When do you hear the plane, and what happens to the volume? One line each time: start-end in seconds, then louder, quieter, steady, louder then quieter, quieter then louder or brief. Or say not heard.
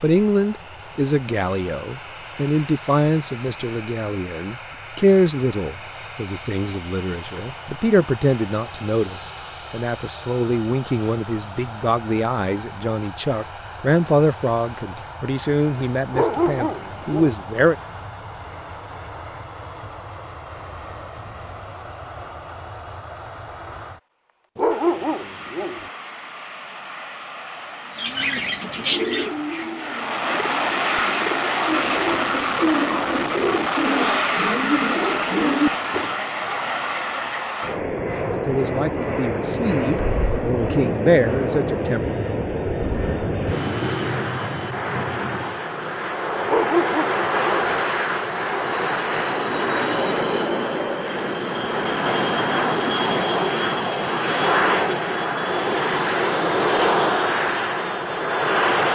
0.0-58.9 louder.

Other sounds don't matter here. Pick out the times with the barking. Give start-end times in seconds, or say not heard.
16.1-17.4, 24.6-25.9, 46.5-47.8.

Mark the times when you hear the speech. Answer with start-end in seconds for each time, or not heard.
0.0-17.8, 38.3-42.0.